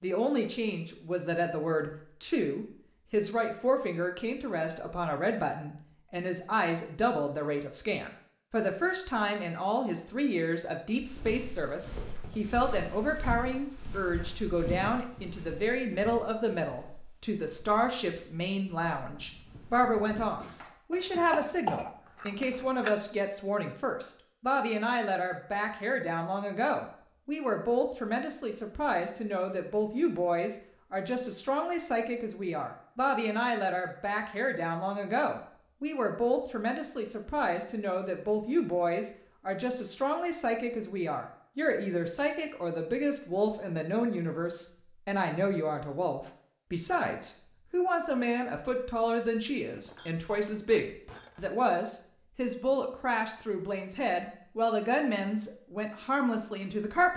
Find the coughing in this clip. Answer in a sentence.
The coughing can be heard from 20.9 to 22.9 s.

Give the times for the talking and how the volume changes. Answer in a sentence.
The talking can be heard from 0.0 to 57.1 s, at a steady volume.